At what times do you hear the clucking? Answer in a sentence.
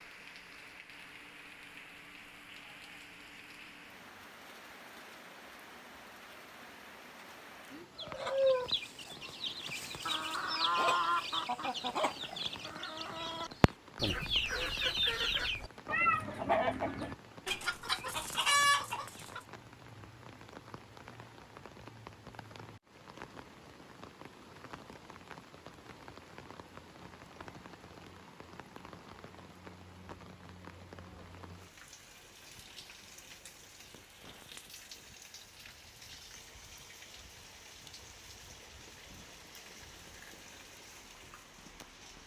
The clucking can be heard from 8.0 to 19.4 s.